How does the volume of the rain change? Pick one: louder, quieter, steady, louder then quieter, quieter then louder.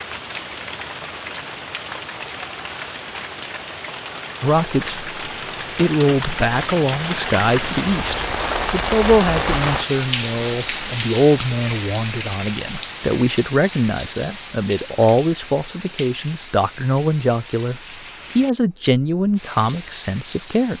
louder then quieter.